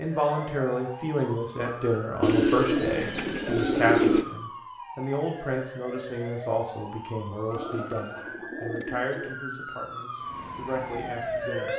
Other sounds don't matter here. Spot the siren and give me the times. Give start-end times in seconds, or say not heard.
0.0-11.7.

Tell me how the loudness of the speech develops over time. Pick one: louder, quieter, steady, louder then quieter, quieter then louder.
quieter.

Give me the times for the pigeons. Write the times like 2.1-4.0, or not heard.
2.2-4.2, 7.5-9.4.